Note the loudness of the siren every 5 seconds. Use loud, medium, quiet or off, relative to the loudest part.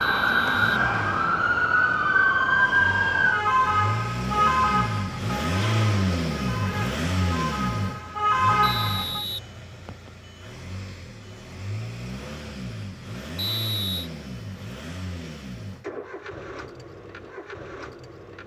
loud, medium, off, off.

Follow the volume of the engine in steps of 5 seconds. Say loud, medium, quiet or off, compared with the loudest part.
medium, loud, medium, medium.